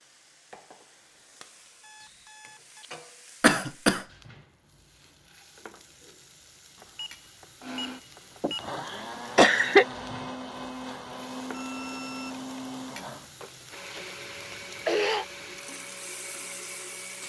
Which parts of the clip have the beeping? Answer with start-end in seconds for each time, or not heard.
1.8-3.0, 6.8-8.8, 11.5-12.5.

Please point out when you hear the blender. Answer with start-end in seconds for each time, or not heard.
7.6-17.2.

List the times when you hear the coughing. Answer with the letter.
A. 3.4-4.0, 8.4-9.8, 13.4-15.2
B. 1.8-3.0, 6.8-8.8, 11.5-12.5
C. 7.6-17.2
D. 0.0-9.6
A.